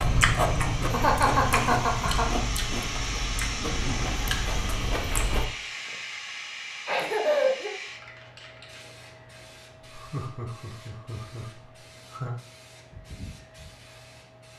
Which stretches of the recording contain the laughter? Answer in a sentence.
You can hear the laughter from 0.9 to 2.3 s, from 6.8 to 7.7 s and from 9.8 to 12.3 s.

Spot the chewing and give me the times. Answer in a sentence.
You can hear the chewing from 0.0 to 5.5 s.